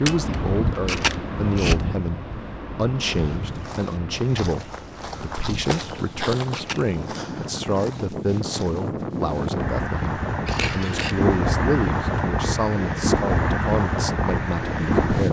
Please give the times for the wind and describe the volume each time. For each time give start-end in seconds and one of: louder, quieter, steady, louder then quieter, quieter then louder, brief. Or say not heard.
0.0-15.2 quieter then louder.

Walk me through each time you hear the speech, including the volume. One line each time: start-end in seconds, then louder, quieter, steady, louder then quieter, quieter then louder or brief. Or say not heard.
0.0-15.2 steady.